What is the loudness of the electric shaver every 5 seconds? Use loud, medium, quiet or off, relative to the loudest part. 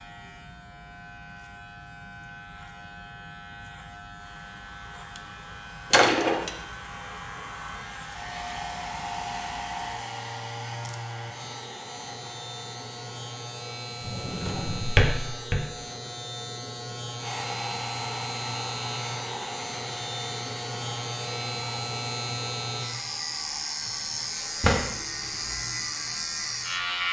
quiet, medium, medium, medium, loud, loud.